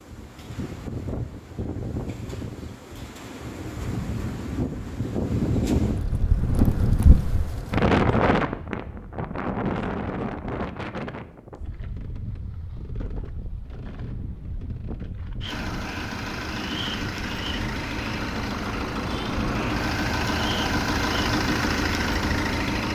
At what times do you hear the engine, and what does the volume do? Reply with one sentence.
You can hear the engine from 15.4 to 22.9 s, getting louder.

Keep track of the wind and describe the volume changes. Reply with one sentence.
The loudness of the wind goes up, then down.